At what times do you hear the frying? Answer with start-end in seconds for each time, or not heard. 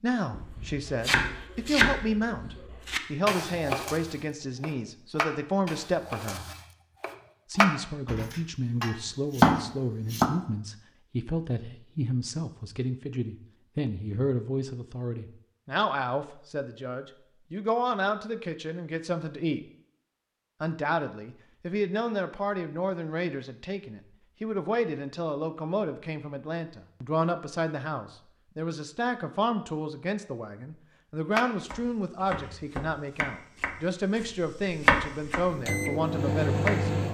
not heard.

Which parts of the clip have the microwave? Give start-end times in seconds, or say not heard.
35.5-37.1.